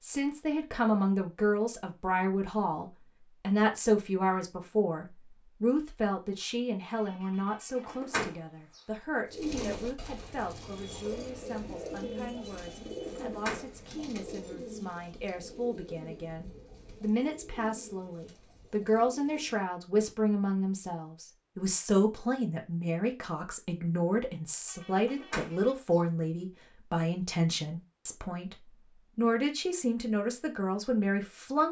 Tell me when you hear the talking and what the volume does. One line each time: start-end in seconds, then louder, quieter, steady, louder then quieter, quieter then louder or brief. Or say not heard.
0.0-31.6 quieter then louder.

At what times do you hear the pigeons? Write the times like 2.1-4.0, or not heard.
9.2-19.6.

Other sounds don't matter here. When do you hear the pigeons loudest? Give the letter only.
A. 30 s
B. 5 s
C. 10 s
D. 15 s
C.